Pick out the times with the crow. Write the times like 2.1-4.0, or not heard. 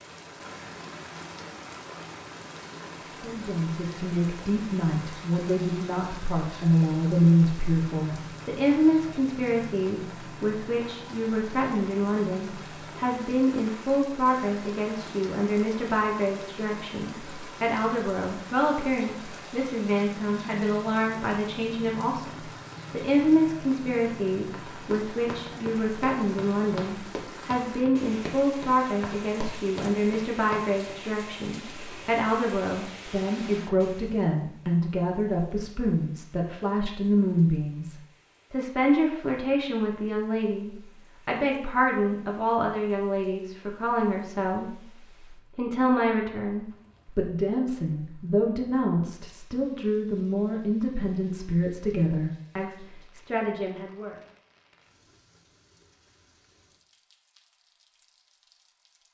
not heard.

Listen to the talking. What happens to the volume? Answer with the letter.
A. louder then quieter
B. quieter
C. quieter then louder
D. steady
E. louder
D.